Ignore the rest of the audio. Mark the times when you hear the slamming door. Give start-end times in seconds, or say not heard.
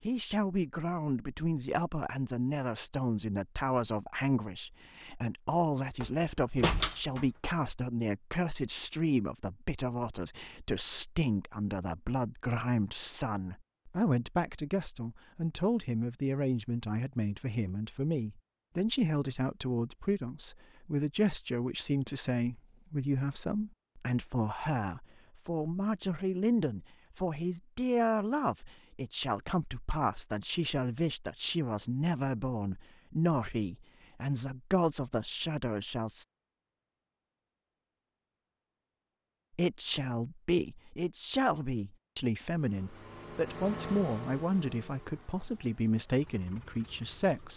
6.0-7.5.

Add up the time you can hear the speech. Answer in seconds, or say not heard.
44 s.